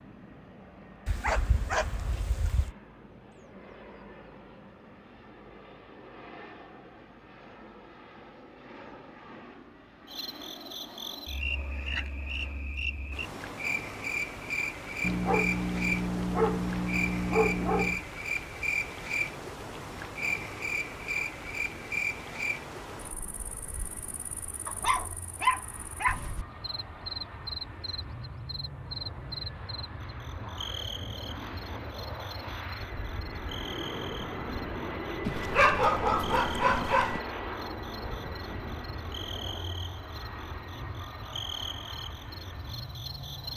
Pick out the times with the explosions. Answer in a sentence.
The explosions can't be heard in this clip.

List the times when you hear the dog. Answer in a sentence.
You can hear the dog from 1.1 to 2.7 s, from 15.0 to 18.0 s, from 24.6 to 26.2 s and from 35.2 to 37.2 s.